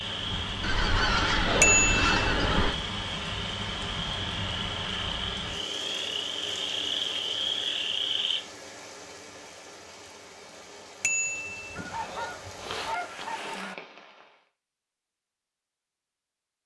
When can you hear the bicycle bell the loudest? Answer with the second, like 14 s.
2 s.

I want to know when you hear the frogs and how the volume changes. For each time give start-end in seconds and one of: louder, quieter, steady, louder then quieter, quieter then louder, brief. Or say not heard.
0.0-8.4 louder.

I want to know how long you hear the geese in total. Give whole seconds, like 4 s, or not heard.
4 s.